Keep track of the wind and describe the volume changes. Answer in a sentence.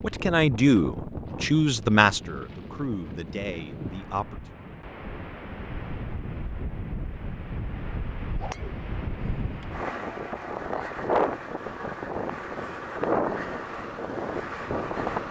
The loudness of the wind goes up.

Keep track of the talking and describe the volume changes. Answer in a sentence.
The loudness of the talking goes down.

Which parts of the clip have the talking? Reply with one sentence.
The talking can be heard from 0.0 to 4.5 s.